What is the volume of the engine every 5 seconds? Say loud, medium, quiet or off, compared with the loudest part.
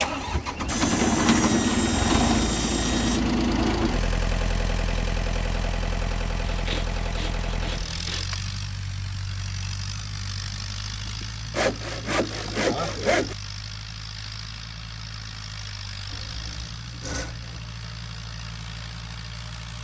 loud, medium, quiet, quiet.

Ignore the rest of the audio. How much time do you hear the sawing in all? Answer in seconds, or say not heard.
8 s.